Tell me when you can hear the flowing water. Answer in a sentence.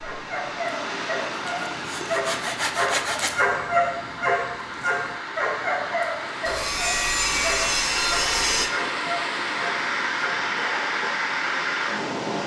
You can hear the flowing water from 0.0 to 12.4 s.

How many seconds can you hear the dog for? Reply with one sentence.
The dog can be heard for 11 seconds in total.